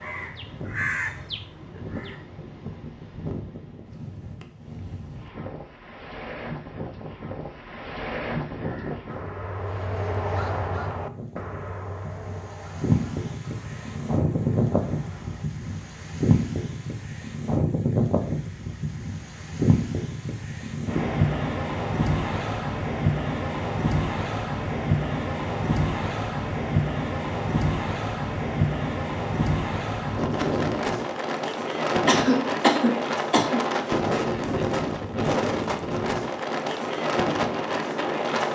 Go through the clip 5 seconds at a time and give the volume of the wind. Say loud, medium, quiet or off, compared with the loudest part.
quiet, medium, loud, loud, loud, loud, loud, loud.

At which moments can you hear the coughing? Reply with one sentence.
The coughing can be heard from 32.0 to 33.6 s.